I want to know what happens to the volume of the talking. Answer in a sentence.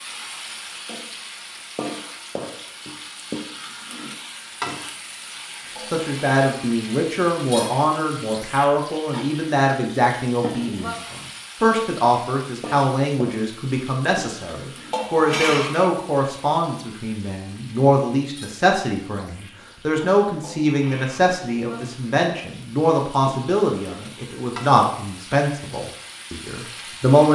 The loudness of the talking stays about the same.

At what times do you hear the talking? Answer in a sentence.
The talking can be heard from 5.9 to 27.3 s.